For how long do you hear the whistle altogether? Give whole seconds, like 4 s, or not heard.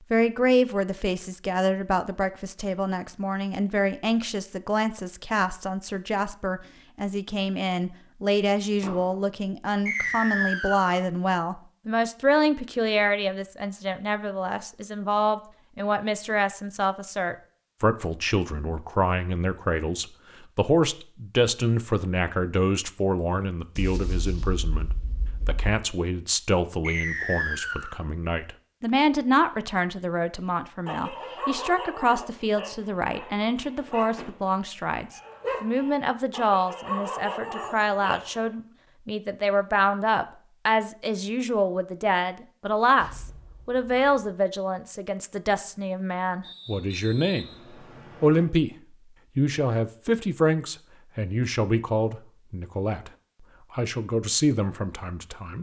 4 s.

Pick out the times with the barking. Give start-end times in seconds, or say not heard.
30.9-38.5.